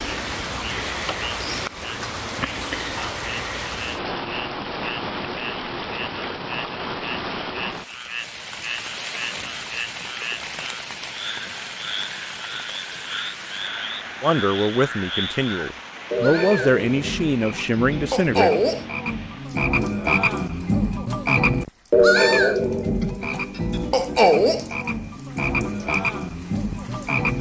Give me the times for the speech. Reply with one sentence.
You can hear the speech from 14.2 to 18.6 s.